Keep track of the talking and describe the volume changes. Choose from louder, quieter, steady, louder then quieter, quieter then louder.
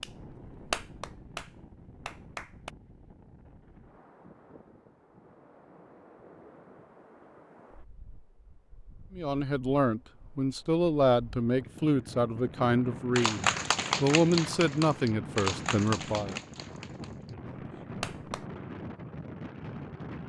steady.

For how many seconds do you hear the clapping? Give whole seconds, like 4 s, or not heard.
8 s.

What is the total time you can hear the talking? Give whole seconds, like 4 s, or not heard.
7 s.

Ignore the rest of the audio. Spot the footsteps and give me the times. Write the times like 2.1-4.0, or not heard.
not heard.